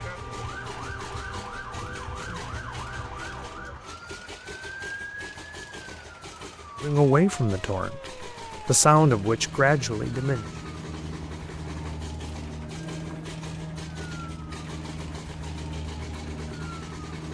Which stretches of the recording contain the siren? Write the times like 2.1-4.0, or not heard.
0.0-17.2.